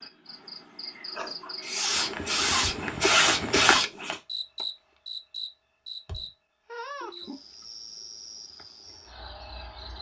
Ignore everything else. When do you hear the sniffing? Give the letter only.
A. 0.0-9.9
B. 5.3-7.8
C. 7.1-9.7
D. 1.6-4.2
D.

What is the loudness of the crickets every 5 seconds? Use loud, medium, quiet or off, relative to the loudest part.
loud, medium.